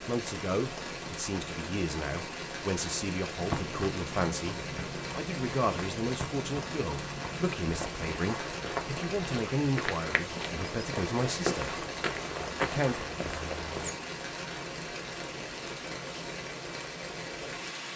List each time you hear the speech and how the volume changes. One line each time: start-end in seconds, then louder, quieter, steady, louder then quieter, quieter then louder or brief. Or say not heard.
0.0-11.8 steady
12.6-13.1 brief.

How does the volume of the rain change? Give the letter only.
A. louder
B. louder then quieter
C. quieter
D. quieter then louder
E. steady
E.